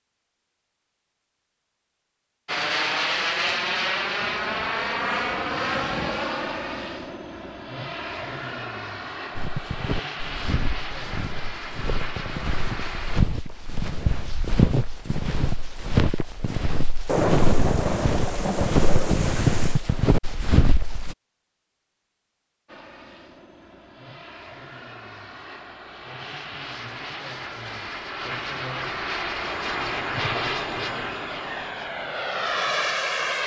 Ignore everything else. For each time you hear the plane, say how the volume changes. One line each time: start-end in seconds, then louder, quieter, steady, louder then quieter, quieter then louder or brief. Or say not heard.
2.5-13.2 quieter
22.6-33.4 louder.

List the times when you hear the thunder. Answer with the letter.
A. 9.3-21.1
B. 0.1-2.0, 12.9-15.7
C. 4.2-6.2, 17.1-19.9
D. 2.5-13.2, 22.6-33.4
C.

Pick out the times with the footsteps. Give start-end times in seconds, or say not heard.
9.3-21.1.